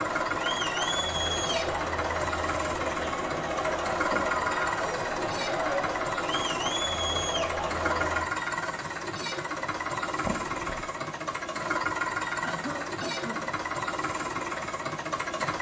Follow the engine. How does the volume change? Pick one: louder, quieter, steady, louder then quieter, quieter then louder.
steady.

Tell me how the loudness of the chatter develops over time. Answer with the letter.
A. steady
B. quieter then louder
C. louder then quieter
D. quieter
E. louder
A.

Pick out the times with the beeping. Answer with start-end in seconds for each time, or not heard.
10.2-10.9.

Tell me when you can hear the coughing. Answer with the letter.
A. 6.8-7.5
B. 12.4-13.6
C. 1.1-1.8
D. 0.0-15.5
B.